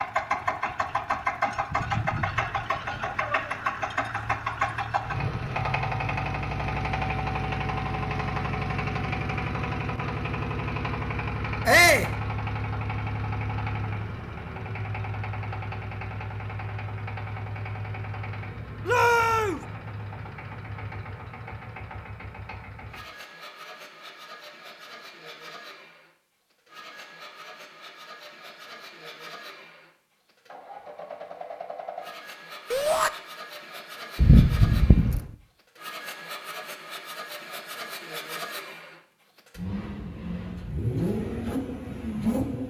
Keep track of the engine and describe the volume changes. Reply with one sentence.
The loudness of the engine goes down, then up.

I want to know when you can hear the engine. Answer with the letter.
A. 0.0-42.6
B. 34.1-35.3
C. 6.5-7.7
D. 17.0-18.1
A.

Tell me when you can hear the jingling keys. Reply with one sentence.
You can hear the jingling keys from 34.1 to 35.3 s.